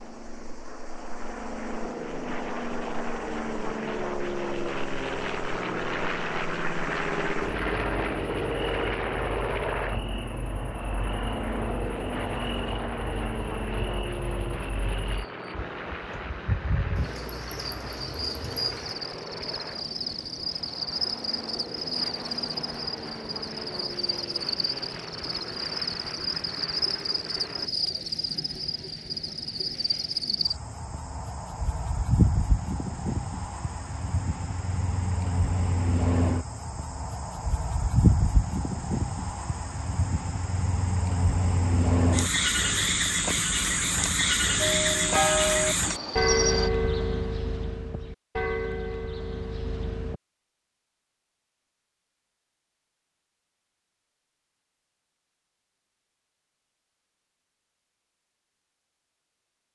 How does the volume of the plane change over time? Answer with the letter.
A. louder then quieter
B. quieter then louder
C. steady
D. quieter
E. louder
D.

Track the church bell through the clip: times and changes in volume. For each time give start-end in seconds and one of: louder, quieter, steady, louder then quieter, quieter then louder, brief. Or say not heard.
44.6-50.2 quieter.